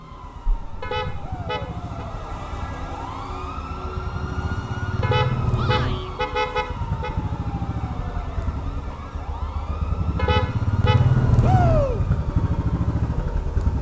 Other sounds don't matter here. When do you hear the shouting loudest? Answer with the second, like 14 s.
12 s.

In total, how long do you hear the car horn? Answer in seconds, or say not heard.
4 s.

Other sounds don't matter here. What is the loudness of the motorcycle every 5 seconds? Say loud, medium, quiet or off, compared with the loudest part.
quiet, medium, loud.